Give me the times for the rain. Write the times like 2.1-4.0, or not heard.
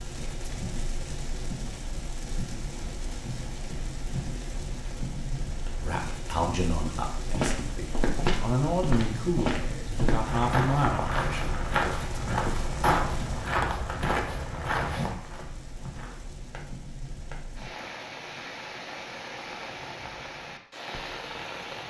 0.0-21.8.